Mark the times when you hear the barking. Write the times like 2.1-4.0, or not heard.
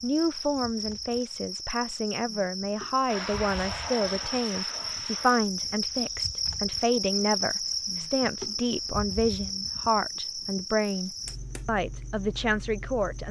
not heard.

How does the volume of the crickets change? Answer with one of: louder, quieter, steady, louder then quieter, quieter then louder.
louder then quieter.